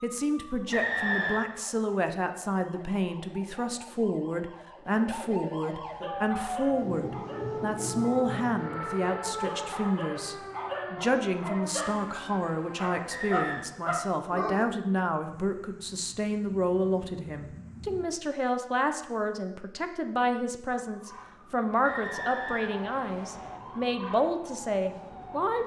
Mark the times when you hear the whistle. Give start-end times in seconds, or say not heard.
0.7-1.4, 13.1-13.7, 21.8-23.6.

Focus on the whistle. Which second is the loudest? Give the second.
1 s.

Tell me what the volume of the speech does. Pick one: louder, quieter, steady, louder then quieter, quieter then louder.
steady.